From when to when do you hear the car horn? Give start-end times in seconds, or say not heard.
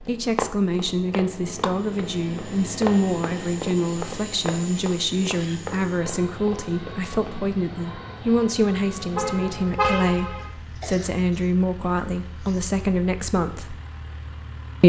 9.2-10.4.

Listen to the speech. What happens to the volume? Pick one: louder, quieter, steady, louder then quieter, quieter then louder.
steady.